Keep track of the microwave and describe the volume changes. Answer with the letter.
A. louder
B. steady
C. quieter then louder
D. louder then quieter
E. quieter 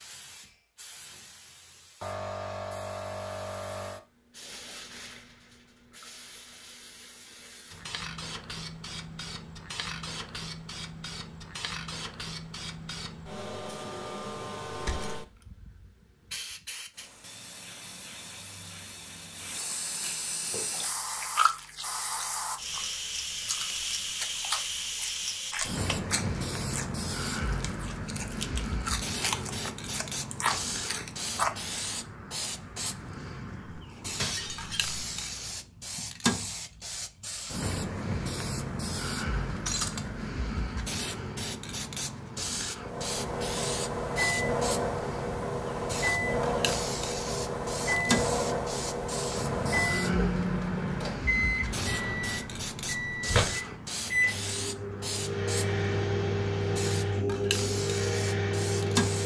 B.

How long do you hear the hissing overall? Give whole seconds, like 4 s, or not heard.
59 s.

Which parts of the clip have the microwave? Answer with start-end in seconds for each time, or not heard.
42.8-59.2.